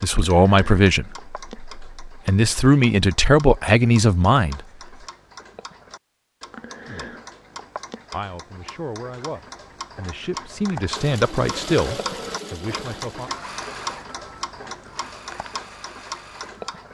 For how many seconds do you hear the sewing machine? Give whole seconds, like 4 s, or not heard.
6 s.